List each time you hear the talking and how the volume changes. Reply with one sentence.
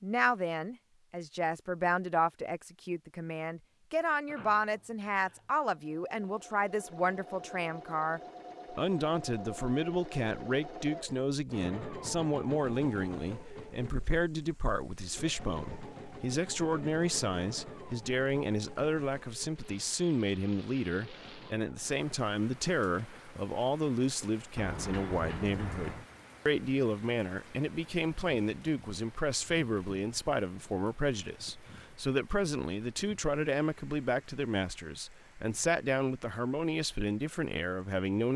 The talking can be heard from 0.0 to 38.3 s, at a steady volume.